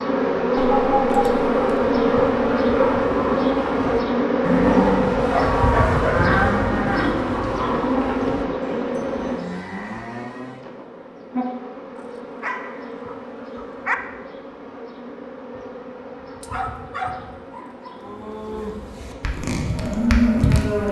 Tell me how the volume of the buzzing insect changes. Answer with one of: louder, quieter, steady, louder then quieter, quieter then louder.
quieter.